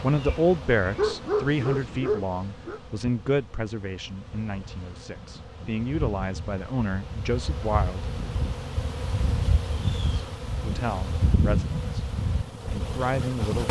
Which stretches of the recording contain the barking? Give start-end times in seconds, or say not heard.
0.9-2.8.